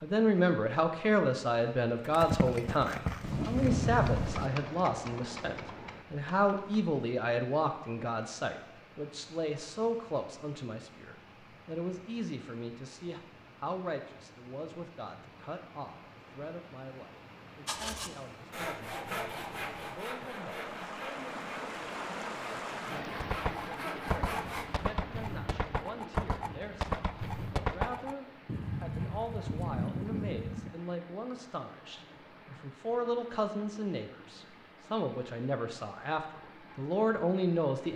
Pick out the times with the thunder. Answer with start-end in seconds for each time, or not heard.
3.2-4.5.